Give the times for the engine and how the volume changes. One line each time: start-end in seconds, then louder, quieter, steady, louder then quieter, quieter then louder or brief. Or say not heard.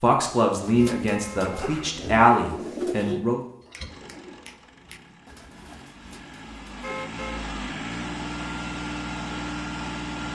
3.6-10.3 louder.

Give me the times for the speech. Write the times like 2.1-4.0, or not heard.
0.0-3.4.